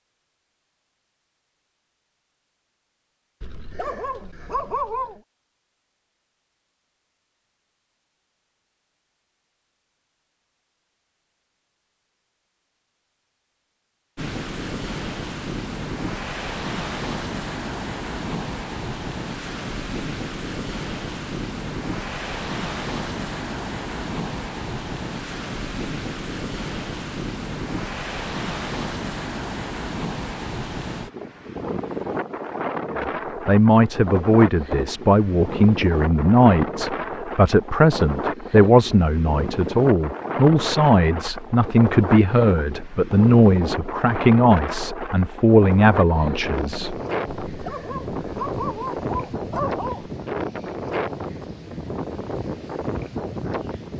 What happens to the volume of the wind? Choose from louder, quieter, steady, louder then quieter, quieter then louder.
steady.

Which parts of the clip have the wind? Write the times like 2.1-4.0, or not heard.
14.2-53.9.